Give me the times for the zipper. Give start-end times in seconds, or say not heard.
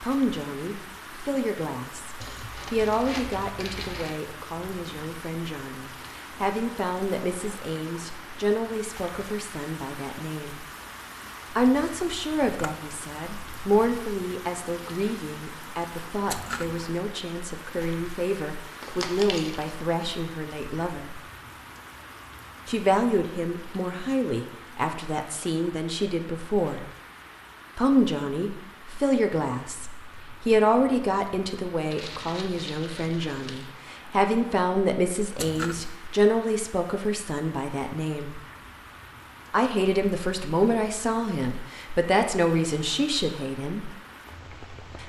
not heard.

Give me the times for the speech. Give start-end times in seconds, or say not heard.
0.0-10.7, 11.5-21.2, 22.6-26.9, 27.8-38.4, 39.5-43.9.